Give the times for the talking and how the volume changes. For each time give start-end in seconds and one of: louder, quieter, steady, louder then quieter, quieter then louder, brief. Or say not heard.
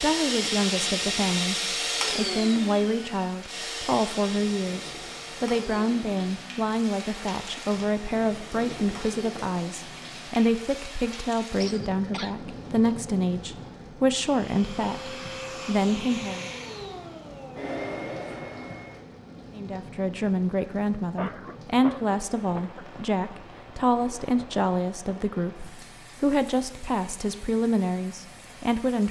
0.0-16.4 steady
19.6-29.0 steady.